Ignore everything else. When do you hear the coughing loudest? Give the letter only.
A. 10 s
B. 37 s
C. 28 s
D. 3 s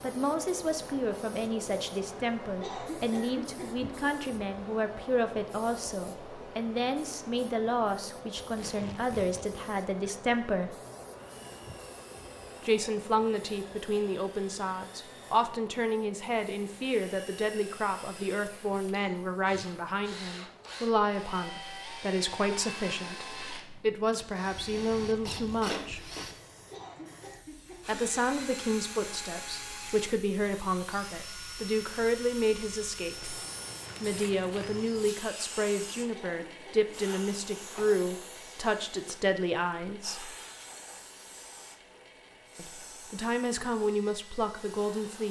D.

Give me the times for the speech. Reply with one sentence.
The speech can be heard from 0.0 to 10.8 s, from 12.6 to 26.1 s, from 27.9 to 33.4 s, from 34.0 to 40.4 s and from 42.5 to 45.2 s.